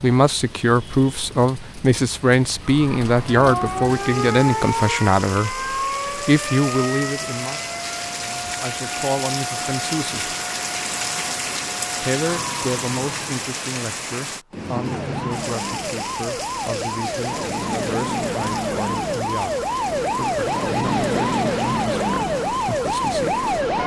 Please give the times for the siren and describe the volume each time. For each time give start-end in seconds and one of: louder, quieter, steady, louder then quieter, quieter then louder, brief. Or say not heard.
2.6-13.4 quieter
14.8-23.8 louder.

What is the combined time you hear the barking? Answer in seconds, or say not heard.
not heard.